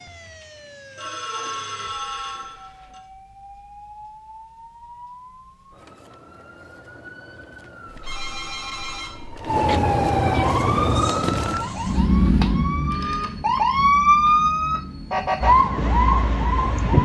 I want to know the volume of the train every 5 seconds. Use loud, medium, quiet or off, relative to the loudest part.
off, off, loud, medium.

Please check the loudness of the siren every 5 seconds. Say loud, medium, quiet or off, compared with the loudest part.
quiet, medium, loud, loud.